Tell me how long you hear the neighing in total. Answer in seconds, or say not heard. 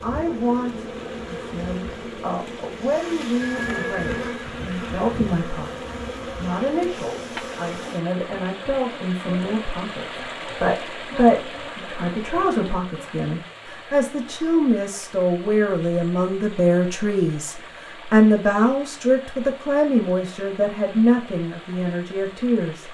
2 s.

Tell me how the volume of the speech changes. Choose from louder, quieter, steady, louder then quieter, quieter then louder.
louder.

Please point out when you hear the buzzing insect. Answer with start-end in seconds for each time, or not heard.
0.0-13.1.